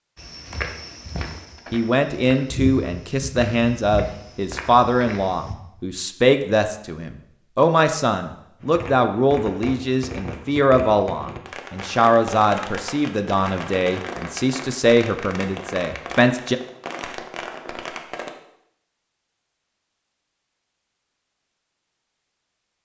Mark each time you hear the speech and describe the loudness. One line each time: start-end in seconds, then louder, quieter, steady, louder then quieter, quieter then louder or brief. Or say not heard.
1.7-16.6 steady.